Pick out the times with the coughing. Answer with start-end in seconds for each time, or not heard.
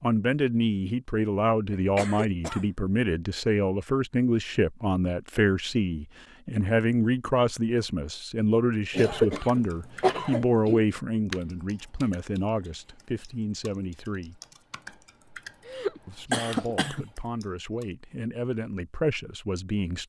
1.7-2.6, 8.9-10.8, 15.7-17.1.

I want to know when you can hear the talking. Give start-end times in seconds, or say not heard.
0.0-14.4, 16.1-20.0.